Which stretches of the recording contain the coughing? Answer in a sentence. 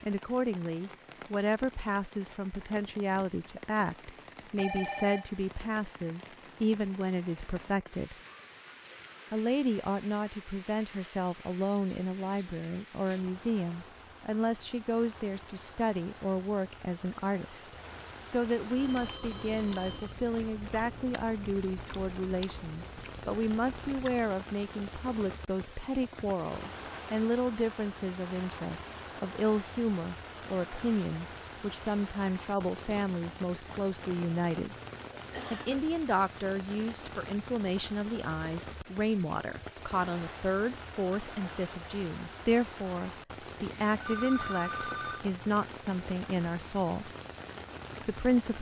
The coughing can be heard from 35.1 to 35.8 s.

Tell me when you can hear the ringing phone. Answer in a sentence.
You can hear the ringing phone from 4.5 to 5.3 s, from 18.8 to 20.1 s and from 43.7 to 45.2 s.